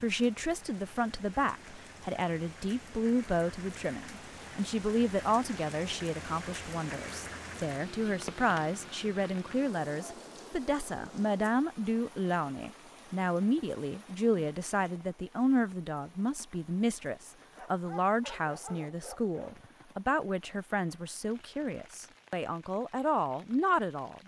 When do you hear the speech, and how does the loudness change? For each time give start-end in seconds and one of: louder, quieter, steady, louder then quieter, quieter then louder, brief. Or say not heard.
0.0-24.2 steady.